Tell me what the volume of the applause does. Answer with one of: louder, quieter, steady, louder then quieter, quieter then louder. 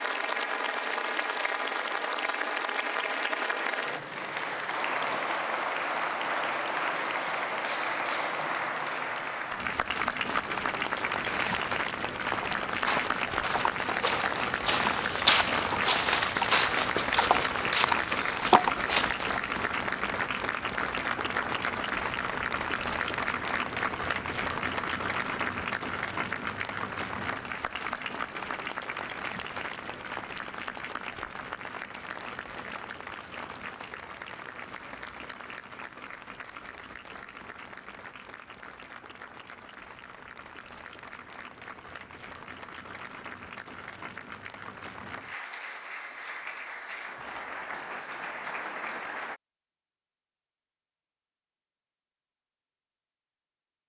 quieter.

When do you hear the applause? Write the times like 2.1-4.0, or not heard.
0.0-49.4.